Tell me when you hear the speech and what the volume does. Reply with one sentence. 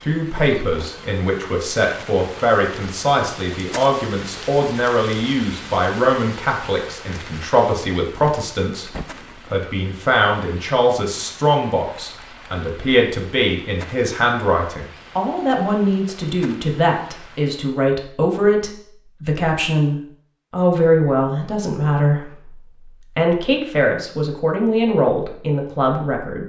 You can hear the speech from 0.0 to 8.9 s, at a steady volume; and from 9.5 to 26.4 s, at a steady volume.